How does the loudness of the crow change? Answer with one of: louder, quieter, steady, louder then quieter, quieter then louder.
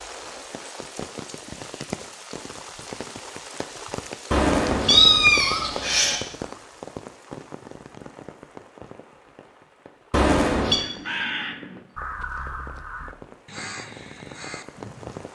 quieter.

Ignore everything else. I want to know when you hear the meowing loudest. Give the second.
5 s.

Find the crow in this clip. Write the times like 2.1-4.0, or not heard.
10.8-15.2.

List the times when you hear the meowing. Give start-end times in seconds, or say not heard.
4.3-6.2, 10.1-10.8.